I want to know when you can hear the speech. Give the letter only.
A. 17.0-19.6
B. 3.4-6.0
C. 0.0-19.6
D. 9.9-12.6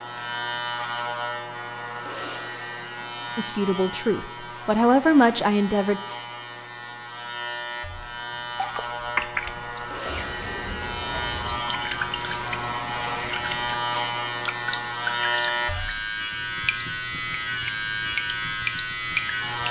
B.